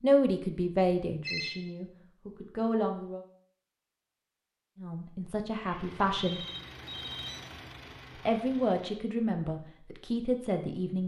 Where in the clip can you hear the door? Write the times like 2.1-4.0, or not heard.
not heard.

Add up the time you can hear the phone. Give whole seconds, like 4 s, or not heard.
2 s.